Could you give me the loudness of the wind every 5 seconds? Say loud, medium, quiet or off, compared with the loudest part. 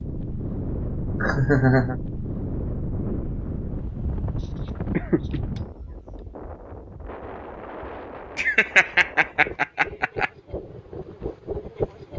loud, medium, loud.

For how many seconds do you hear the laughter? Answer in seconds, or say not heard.
4 s.